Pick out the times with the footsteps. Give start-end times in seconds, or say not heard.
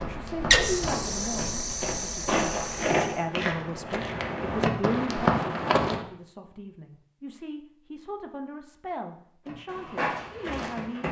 0.0-6.0, 9.4-11.0.